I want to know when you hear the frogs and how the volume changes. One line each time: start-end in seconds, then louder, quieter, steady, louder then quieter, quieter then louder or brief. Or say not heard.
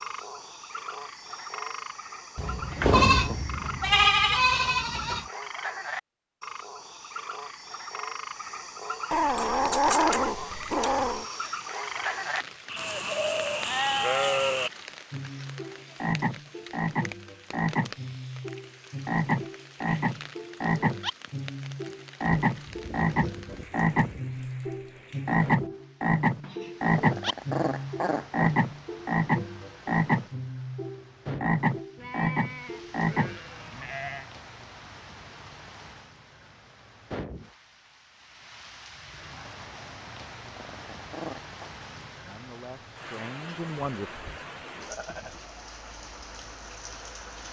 0.0-33.4 louder.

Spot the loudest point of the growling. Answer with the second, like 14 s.
10 s.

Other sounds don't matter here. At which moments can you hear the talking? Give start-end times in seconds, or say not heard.
42.2-44.1.